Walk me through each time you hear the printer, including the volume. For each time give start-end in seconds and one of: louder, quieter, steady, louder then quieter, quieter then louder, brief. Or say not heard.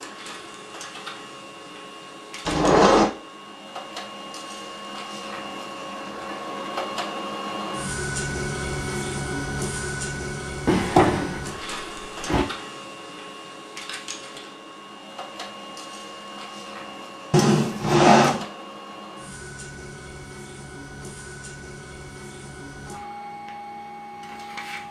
0.0-24.8 louder then quieter.